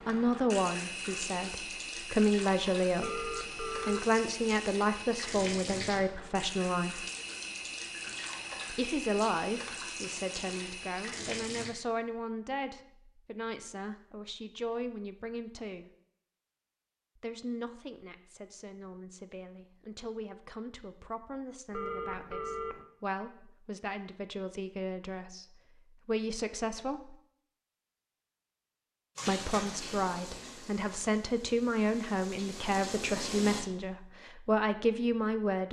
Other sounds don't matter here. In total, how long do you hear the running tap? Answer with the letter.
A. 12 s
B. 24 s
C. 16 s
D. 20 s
C.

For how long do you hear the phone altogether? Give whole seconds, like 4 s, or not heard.
2 s.